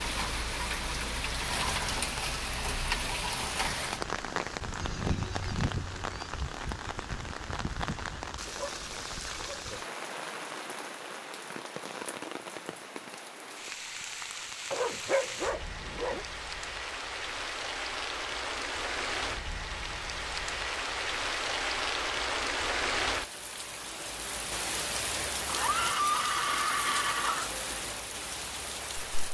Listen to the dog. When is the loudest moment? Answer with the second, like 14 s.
15 s.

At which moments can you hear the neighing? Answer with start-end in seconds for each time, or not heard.
4.8-6.2, 25.4-27.5.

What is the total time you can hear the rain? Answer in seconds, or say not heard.
29 s.